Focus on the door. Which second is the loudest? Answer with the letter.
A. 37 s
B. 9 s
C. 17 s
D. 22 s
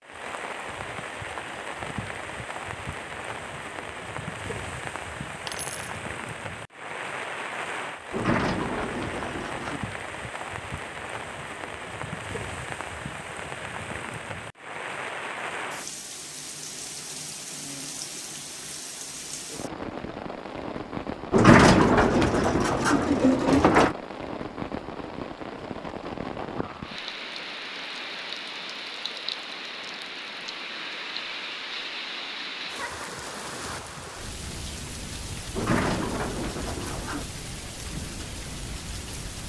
D.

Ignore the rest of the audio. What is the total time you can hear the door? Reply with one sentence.
You can hear the door for 6 seconds altogether.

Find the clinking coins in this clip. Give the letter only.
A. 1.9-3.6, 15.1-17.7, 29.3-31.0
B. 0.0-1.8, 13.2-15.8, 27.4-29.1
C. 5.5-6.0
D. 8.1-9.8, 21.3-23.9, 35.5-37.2
C.